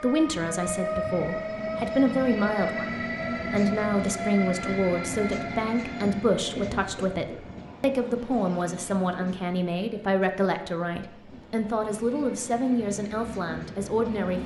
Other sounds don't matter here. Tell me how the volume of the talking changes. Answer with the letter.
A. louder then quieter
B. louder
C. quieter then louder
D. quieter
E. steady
E.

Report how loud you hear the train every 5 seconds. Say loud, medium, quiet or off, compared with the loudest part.
loud, medium, medium.